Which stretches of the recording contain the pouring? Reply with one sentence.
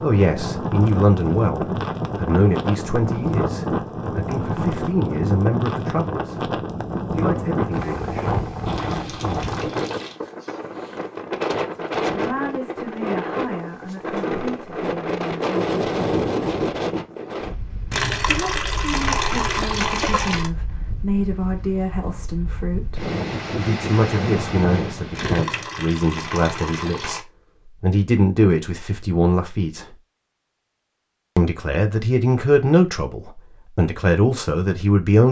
The pouring can be heard from 8.7 to 10.2 s, from 17.9 to 20.5 s and from 25.1 to 27.2 s.